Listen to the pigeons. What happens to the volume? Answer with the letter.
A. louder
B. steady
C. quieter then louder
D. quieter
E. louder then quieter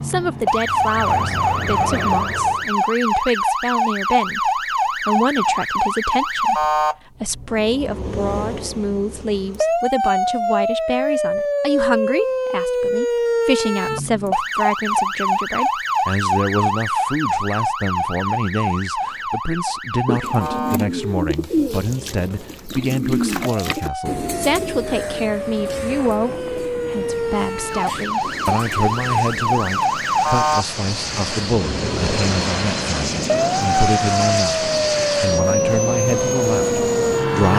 D.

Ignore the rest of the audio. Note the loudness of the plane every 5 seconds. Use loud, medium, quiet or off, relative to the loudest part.
medium, off, off, off, off, quiet, loud, loud.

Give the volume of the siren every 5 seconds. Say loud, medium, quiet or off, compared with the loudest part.
loud, loud, loud, loud, medium, loud, loud, loud.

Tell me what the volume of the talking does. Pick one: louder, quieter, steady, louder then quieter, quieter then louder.
steady.